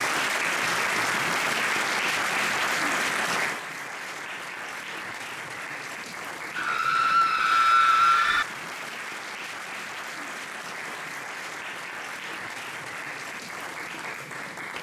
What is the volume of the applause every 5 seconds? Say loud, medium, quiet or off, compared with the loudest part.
loud, medium, medium.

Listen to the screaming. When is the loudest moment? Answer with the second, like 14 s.
8 s.